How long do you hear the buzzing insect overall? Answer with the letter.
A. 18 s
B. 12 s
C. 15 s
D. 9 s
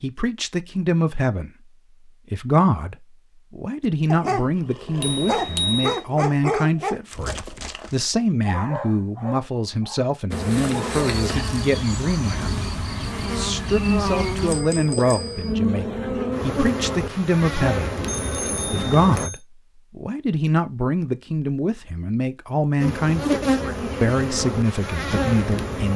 B.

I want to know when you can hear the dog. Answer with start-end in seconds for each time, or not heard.
4.1-11.3.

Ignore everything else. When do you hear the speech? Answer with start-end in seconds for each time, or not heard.
0.0-1.5, 2.3-17.9, 18.7-25.9.